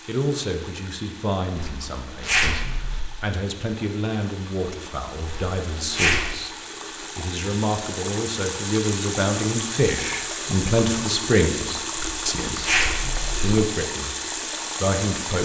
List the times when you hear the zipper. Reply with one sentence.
The zipper can be heard from 1.6 to 3.0 s, from 5.2 to 6.3 s and from 11.9 to 13.5 s.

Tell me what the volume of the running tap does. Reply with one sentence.
The loudness of the running tap goes up.